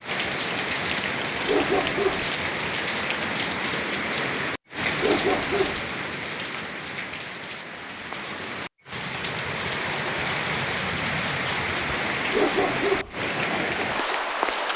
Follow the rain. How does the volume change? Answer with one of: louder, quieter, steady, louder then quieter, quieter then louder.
quieter then louder.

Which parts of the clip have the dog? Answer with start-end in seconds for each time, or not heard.
1.4-2.2, 5.0-5.8, 12.3-13.2.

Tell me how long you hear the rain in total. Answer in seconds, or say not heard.
15 s.